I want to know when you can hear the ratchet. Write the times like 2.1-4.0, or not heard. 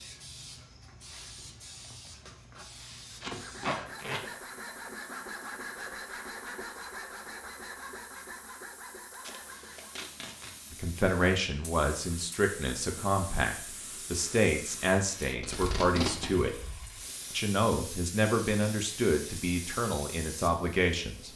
not heard.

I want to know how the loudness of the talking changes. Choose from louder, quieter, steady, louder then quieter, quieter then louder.
steady.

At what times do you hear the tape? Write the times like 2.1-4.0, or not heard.
3.2-4.2, 9.1-10.5, 15.4-16.3.